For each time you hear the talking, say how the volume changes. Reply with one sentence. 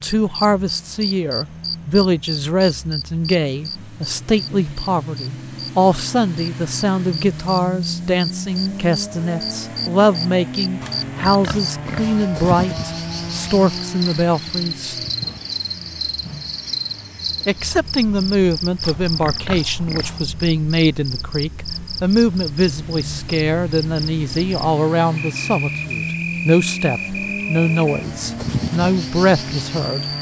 You can hear the talking from 0.0 to 14.9 s, at a steady volume; and from 17.4 to 30.1 s, at a steady volume.